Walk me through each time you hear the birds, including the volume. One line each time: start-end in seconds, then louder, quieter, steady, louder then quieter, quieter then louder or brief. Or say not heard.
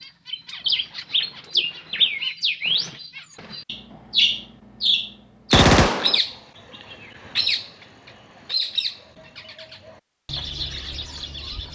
0.0-11.6 quieter.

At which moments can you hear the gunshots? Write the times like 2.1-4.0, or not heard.
5.5-6.2.